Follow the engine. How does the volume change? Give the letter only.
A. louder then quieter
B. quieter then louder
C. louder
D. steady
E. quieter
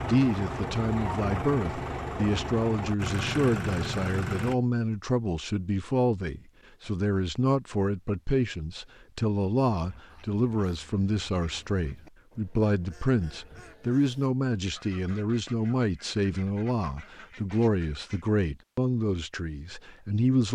D.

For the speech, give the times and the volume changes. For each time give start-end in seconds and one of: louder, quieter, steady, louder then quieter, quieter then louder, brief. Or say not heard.
0.0-20.4 steady.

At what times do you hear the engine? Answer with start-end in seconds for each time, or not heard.
0.0-4.5.